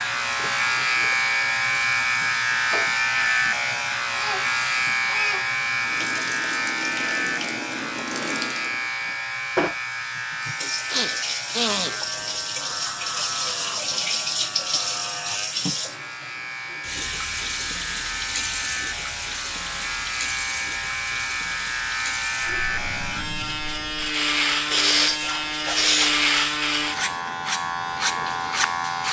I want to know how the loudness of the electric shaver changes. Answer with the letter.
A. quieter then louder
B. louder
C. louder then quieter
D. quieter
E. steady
A.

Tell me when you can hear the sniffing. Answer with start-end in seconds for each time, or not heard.
10.9-11.9, 24.6-26.1.